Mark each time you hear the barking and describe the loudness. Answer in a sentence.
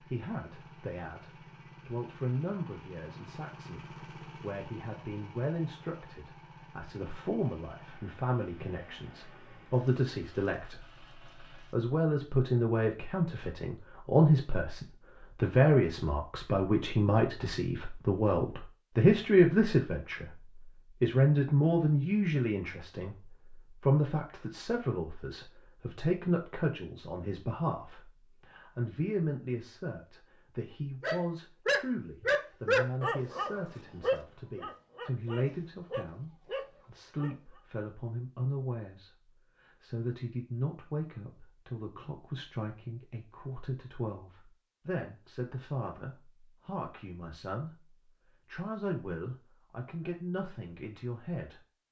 You can hear the barking from 31.0 to 37.6 s, getting quieter.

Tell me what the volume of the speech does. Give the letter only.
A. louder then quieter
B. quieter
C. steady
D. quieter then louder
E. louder
A.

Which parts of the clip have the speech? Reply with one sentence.
You can hear the speech from 0.0 to 51.6 s.